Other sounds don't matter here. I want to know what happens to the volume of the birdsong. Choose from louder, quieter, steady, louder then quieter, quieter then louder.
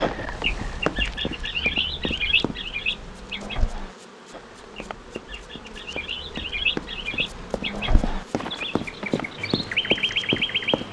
quieter then louder.